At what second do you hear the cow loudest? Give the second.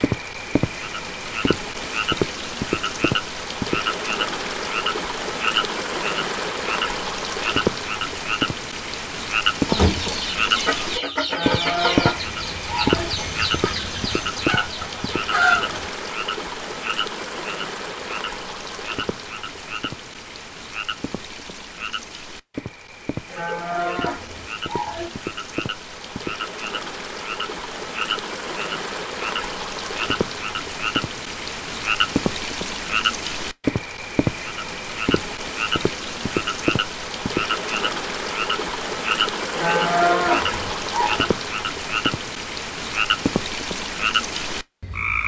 40 s.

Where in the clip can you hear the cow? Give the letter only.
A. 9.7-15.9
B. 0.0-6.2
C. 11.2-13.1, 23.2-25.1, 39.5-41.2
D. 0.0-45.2
C.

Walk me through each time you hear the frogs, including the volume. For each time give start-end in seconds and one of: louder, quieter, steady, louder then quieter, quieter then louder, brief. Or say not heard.
0.0-45.2 quieter then louder.